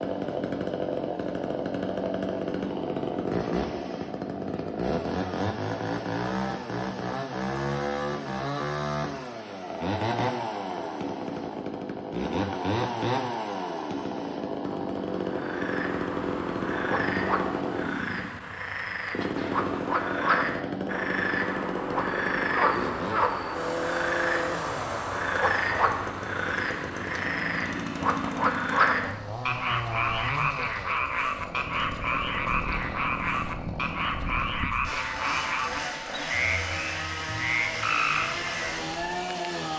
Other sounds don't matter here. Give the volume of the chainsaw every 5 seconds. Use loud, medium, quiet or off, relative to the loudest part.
loud, loud, loud, loud, loud, medium, medium, loud.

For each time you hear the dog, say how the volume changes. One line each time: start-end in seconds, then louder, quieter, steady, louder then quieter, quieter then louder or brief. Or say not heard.
not heard.